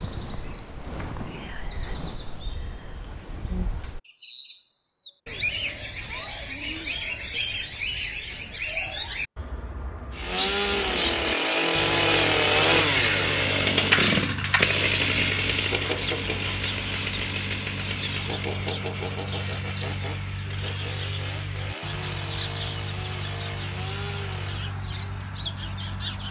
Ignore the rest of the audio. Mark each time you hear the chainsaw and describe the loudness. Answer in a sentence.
You can hear the chainsaw from 10.1 to 24.8 s, getting quieter.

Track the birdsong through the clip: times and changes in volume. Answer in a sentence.
The birdsong can be heard from 0.0 to 26.2 s, at a steady volume.